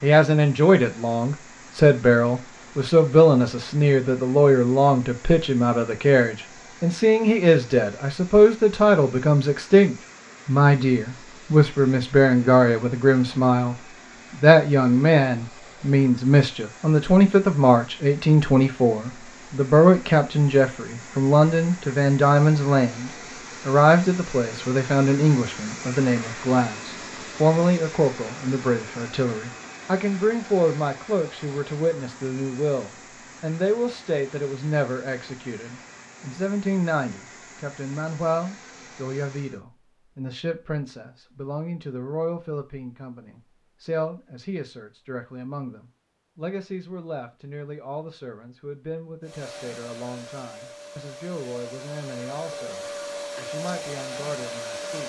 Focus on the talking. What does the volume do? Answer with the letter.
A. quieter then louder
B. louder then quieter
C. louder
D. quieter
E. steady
D.